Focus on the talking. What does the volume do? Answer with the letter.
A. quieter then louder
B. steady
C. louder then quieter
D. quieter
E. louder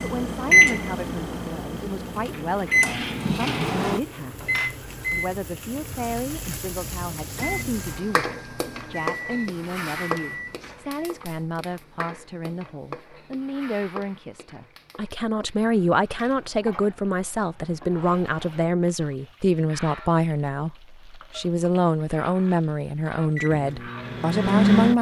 E.